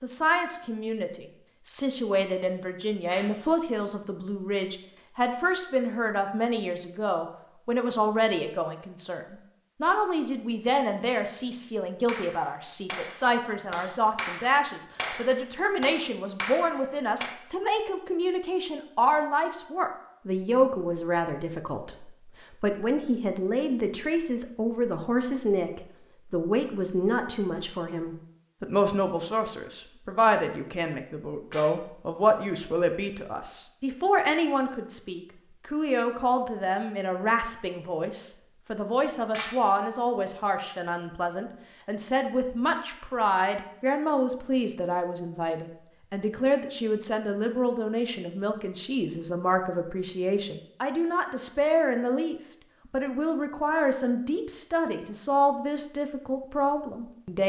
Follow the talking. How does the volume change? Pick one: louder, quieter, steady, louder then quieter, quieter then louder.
steady.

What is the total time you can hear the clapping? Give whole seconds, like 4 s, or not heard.
5 s.